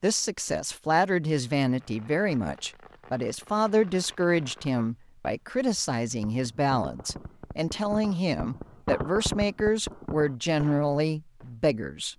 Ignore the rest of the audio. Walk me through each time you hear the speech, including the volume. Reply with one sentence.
You can hear the speech from 0.0 to 12.1 s, at a steady volume.